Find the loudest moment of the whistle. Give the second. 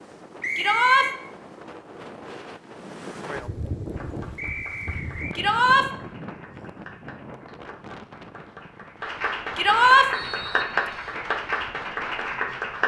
1 s.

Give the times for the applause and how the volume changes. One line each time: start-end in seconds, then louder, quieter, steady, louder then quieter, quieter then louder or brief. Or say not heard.
3.9-12.8 louder.